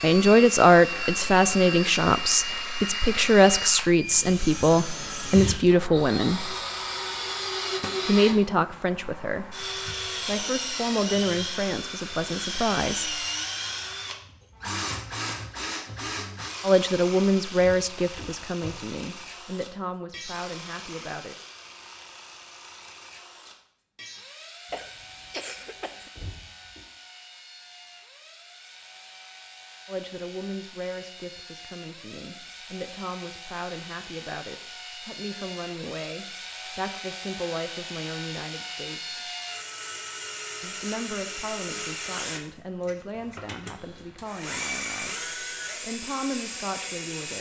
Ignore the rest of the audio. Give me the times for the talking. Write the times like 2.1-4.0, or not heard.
0.0-6.5, 8.1-13.2, 16.6-21.4, 29.9-39.3, 40.6-47.3.